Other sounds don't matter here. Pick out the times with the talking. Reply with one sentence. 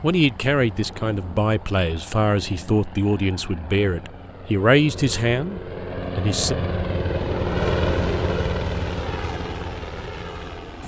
The talking can be heard from 0.0 to 6.5 s.